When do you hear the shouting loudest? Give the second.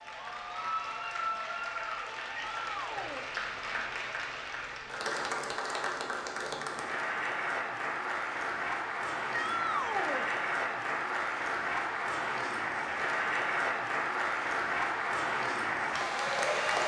10 s.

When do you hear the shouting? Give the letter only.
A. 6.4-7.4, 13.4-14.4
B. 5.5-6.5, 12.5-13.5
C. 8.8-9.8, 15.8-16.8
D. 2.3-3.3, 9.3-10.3
D.